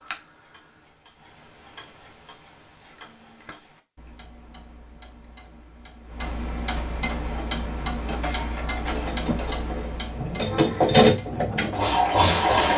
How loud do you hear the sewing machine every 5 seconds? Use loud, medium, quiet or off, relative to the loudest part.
off, quiet, loud.